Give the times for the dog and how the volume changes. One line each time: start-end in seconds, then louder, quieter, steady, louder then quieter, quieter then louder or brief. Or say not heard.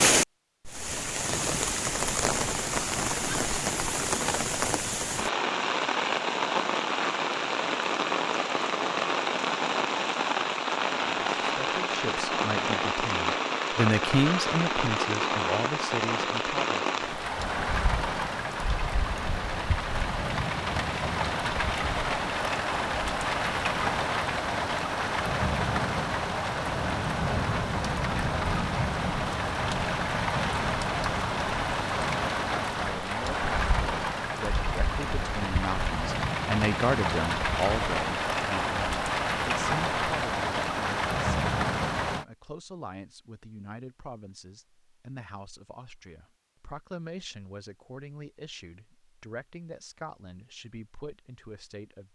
not heard.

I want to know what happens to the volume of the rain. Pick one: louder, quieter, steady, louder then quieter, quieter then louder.
steady.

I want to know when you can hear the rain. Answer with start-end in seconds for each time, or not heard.
0.0-42.2.